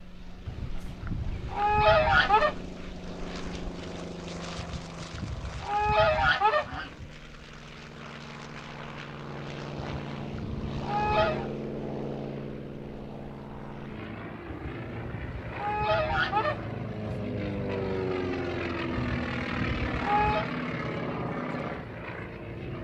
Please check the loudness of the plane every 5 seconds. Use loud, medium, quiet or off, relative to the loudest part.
medium, medium, loud, loud, loud.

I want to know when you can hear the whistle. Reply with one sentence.
The whistle can't be heard in this clip.